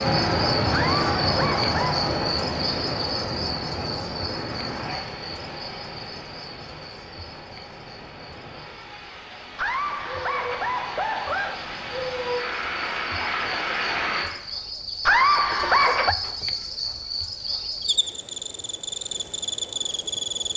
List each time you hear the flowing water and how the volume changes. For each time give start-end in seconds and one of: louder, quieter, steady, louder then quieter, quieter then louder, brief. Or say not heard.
0.0-14.2 quieter then louder.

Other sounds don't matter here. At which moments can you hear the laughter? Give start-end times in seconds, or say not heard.
0.7-2.0, 9.6-11.6, 15.1-16.1.